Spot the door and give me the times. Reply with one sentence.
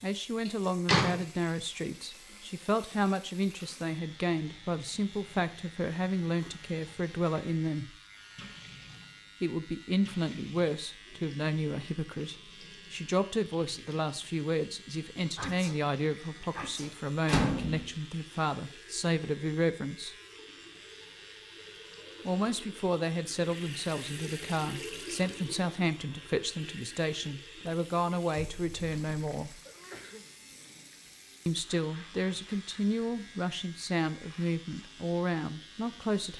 You can hear the door from 0.5 to 1.1 s, from 17.2 to 17.9 s and from 28.4 to 29.2 s.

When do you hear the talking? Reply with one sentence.
You can hear the talking from 0.0 to 8.0 s, from 9.4 to 20.1 s, from 22.2 to 29.6 s and from 31.4 to 36.3 s.